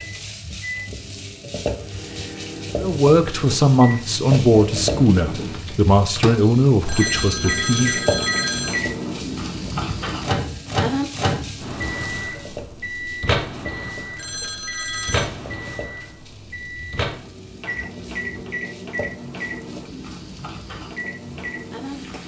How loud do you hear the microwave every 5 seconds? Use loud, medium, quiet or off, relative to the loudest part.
medium, loud, loud, loud, medium.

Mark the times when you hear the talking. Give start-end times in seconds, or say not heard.
2.8-8.0.